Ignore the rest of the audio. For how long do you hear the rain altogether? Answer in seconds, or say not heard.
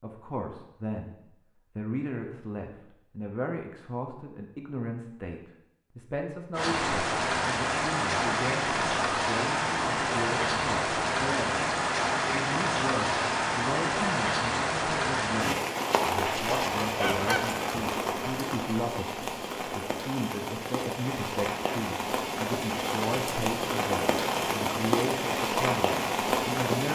20 s.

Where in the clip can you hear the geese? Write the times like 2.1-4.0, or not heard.
15.8-17.4.